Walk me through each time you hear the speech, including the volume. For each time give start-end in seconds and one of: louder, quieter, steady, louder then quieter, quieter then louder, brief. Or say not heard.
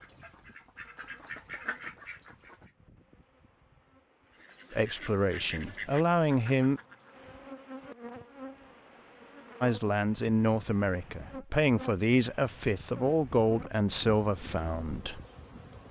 4.7-6.8 brief
9.6-15.2 steady.